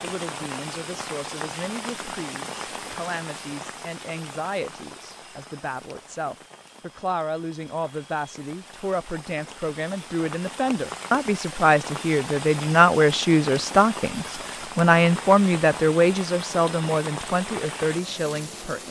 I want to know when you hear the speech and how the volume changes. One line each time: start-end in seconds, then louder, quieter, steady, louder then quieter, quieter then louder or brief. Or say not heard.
0.0-18.8 louder.